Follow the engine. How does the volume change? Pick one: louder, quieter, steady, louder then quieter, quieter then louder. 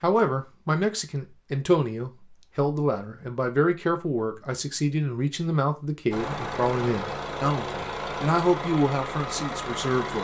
steady.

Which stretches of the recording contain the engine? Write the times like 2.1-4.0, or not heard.
6.1-10.1.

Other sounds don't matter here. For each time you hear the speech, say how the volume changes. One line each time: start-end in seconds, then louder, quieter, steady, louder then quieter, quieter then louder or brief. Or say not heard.
0.0-10.1 steady.